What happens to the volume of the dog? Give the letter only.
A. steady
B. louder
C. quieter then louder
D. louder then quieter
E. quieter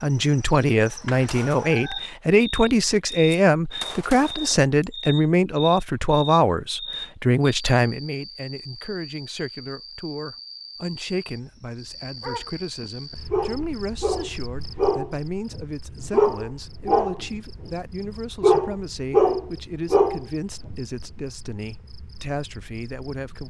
B.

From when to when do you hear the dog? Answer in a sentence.
You can hear the dog from 12.2 to 20.8 s.